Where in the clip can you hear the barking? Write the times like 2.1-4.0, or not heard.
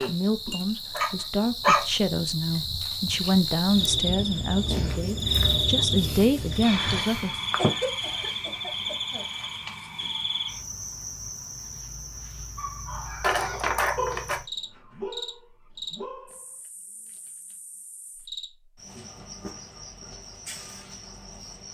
0.0-1.9, 12.6-16.5.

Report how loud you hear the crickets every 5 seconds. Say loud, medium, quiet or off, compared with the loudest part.
loud, loud, medium, quiet, quiet.